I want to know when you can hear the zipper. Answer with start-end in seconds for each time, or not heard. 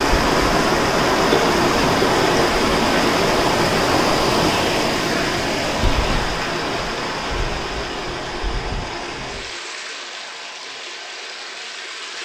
not heard.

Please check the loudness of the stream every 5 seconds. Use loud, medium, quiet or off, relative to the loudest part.
loud, medium, quiet.